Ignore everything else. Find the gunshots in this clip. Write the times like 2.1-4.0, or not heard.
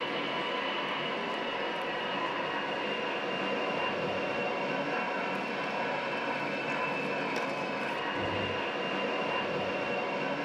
8.2-8.7.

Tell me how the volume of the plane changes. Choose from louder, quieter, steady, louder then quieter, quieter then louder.
steady.